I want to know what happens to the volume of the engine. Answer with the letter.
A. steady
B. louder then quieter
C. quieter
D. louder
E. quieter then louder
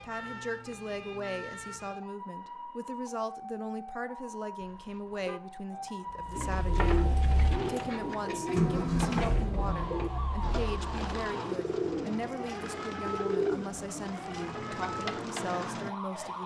B.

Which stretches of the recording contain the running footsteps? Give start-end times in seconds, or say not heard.
not heard.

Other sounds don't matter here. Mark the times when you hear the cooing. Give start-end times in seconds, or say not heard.
6.3-15.9.